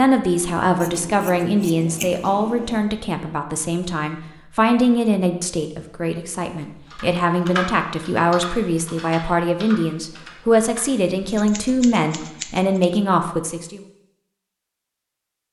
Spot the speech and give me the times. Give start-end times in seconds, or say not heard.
0.0-13.8.